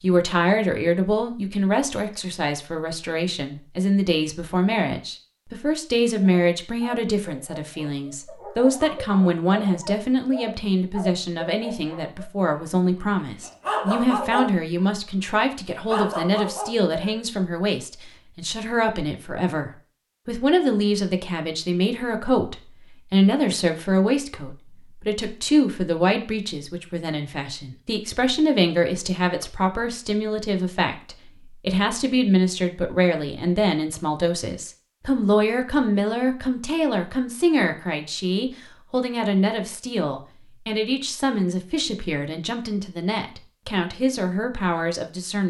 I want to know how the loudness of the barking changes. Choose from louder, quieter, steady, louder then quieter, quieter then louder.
louder.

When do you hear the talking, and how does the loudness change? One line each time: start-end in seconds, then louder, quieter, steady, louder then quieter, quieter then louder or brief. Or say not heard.
0.0-45.4 steady.